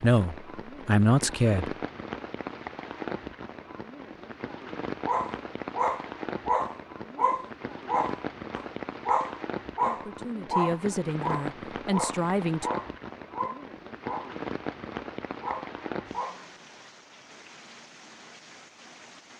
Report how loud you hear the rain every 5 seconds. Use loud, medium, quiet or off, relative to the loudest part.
loud, loud, loud, medium.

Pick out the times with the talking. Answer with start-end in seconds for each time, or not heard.
0.0-1.8, 9.8-12.7.